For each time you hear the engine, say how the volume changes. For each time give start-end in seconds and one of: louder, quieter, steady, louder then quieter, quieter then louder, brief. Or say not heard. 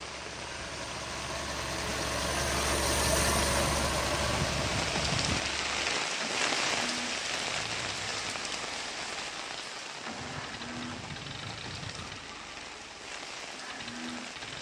0.0-14.5 quieter.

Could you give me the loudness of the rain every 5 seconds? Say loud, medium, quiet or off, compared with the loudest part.
loud, loud, medium.